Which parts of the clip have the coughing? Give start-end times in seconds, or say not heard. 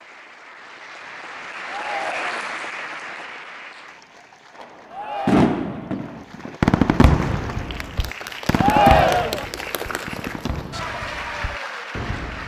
not heard.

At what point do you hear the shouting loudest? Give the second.
9 s.